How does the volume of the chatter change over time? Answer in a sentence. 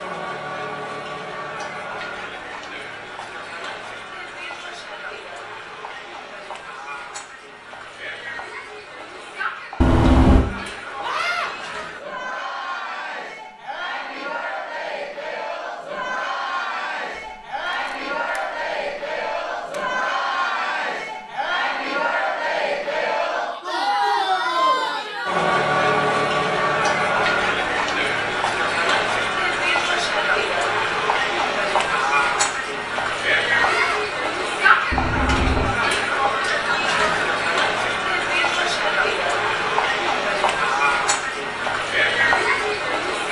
The loudness of the chatter goes up.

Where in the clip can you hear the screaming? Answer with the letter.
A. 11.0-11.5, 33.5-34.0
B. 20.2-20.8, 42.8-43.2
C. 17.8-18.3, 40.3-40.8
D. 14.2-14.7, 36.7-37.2
A.